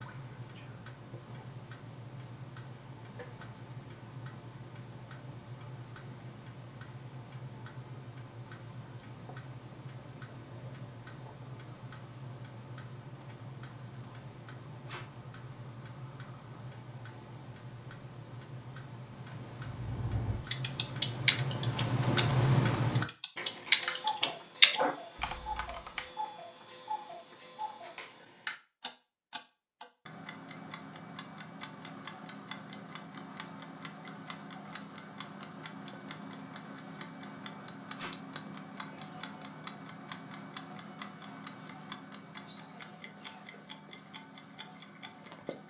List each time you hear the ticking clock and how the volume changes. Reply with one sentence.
The ticking clock can be heard from 0.0 to 45.6 s, getting louder then quieter.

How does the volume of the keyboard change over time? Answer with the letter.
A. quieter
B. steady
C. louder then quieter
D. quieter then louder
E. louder
D.